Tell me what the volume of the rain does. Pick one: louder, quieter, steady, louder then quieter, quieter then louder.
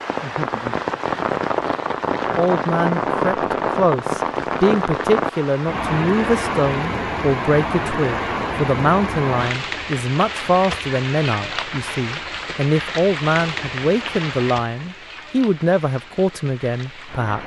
quieter.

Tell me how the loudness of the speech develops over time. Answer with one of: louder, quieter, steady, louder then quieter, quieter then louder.
steady.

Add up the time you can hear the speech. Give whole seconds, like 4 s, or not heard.
15 s.